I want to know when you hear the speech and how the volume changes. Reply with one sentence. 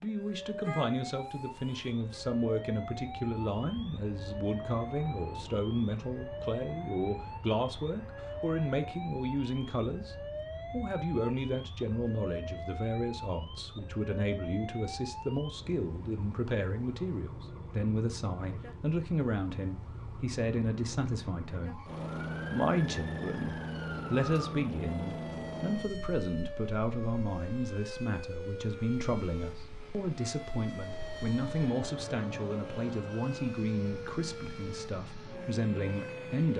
The speech can be heard from 0.0 to 36.5 s, at a steady volume.